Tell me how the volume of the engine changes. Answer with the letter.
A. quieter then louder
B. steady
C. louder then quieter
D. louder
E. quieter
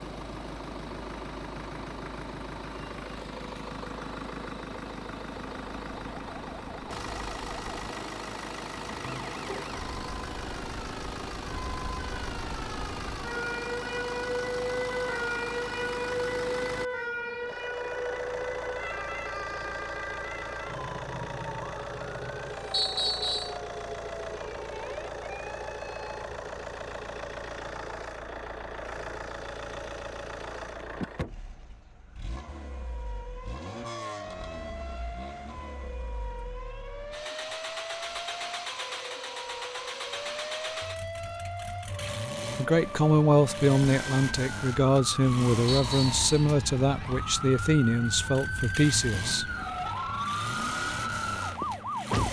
B.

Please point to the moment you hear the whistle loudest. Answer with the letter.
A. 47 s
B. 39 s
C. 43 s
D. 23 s
D.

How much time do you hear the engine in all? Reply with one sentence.
You can hear the engine for 52 seconds altogether.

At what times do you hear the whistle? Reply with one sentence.
You can hear the whistle from 22.7 to 23.6 s and from 45.6 to 46.2 s.